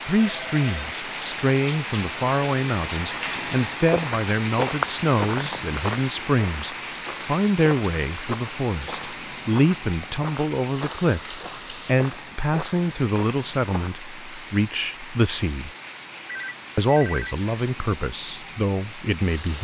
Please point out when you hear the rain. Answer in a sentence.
The rain can be heard from 0.0 to 19.5 s.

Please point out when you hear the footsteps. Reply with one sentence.
You can hear the footsteps from 3.8 to 13.9 s.